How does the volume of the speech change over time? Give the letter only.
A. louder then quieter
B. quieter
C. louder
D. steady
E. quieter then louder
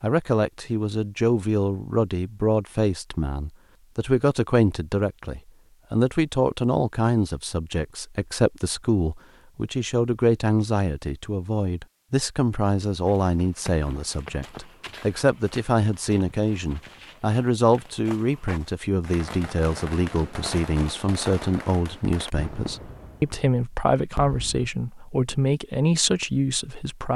D.